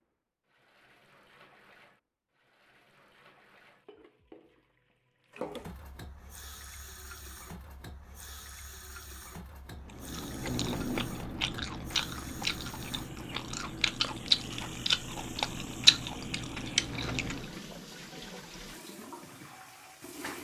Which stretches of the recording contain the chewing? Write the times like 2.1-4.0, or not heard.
9.8-17.5.